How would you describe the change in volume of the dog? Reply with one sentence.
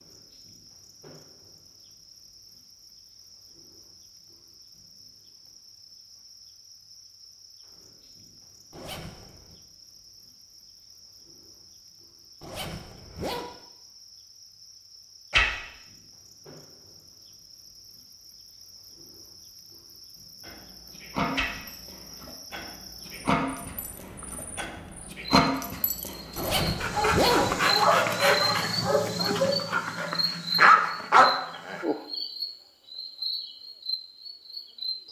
The volume of the dog goes up.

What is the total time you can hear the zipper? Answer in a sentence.
The zipper can be heard for 3 seconds in total.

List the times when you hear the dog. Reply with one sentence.
You can hear the dog from 20.4 to 31.9 s.